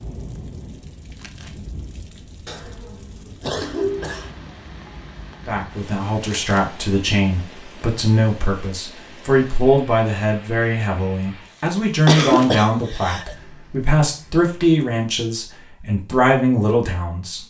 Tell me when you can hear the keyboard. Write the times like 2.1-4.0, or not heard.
not heard.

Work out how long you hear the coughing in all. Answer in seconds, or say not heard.
3 s.